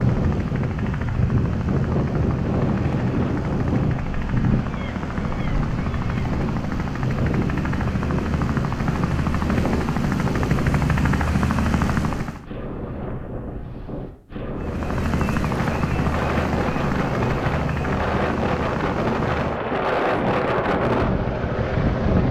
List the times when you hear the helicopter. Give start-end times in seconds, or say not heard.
0.0-12.4, 14.6-22.2.